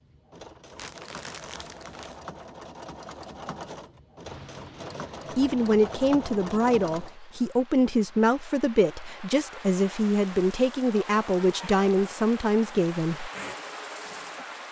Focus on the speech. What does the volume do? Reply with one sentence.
The loudness of the speech stays about the same.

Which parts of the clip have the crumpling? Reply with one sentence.
The crumpling can be heard from 0.8 to 2.2 s.